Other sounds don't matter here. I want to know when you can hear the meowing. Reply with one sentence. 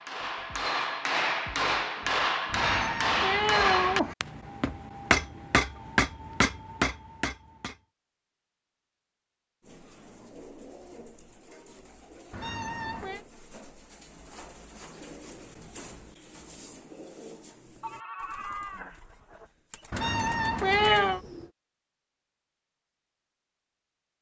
You can hear the meowing from 2.5 to 4.2 s, from 12.3 to 13.2 s and from 19.9 to 21.2 s.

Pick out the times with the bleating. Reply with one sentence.
You can hear the bleating from 17.8 to 19.5 s.